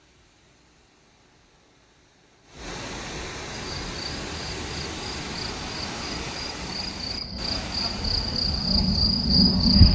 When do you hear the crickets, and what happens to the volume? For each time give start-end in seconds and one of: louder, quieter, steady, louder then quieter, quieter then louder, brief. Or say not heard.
3.5-9.9 louder.